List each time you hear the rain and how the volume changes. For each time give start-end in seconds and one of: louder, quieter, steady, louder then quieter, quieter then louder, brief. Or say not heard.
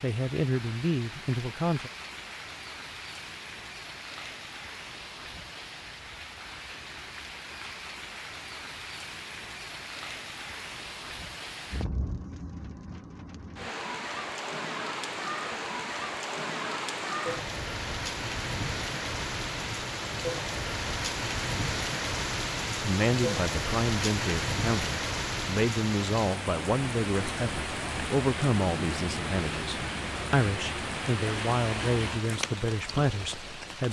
0.0-33.8 louder.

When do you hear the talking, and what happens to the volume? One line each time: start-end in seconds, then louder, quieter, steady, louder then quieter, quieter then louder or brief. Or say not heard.
0.0-1.9 brief
22.8-33.8 steady.